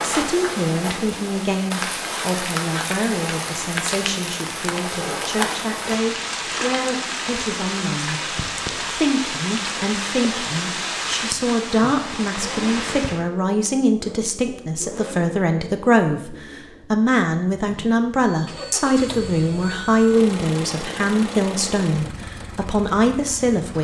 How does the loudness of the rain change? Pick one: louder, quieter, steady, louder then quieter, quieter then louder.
steady.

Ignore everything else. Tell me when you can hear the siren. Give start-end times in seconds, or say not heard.
not heard.